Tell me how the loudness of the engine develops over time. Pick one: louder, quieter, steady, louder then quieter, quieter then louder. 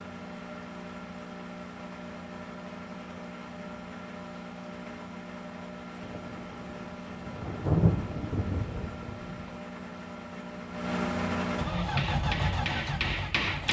louder.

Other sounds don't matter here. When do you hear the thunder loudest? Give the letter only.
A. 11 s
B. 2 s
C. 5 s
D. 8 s
D.